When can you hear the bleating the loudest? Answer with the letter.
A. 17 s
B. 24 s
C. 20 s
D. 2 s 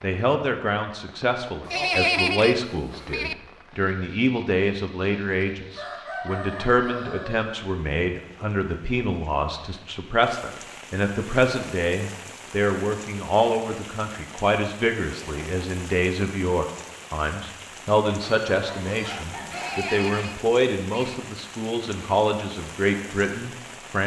D.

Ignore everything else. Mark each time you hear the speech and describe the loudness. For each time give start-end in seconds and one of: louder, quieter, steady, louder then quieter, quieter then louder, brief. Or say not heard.
0.0-24.0 steady.